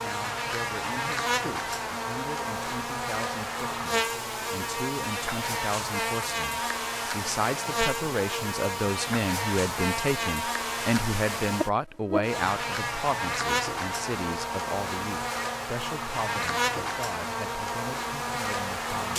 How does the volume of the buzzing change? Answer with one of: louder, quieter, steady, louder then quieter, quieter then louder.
steady.